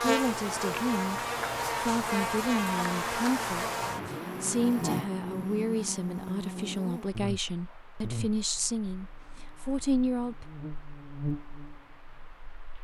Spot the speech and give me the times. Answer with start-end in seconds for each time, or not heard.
0.0-10.4.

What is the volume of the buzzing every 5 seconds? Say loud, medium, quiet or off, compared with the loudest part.
loud, medium, medium.